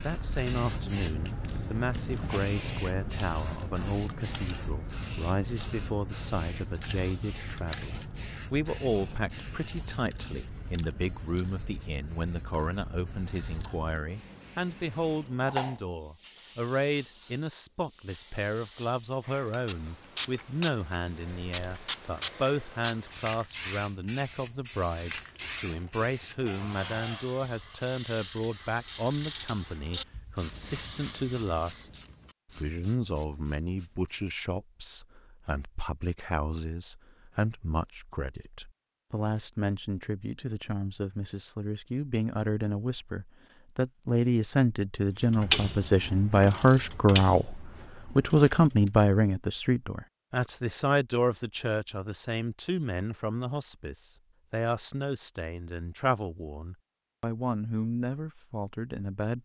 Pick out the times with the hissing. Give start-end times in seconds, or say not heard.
0.0-31.9.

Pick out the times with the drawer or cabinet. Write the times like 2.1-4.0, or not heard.
26.4-27.3.